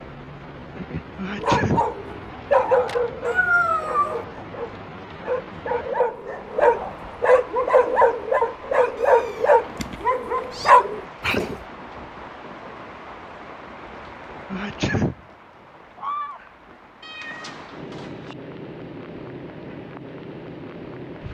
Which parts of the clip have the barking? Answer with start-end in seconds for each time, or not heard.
1.4-11.6.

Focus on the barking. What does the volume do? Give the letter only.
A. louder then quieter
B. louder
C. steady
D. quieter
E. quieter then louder
E.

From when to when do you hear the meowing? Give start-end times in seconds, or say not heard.
3.2-4.2, 9.0-10.7, 17.0-18.4.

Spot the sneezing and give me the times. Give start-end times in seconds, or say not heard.
1.1-1.9, 14.5-15.2.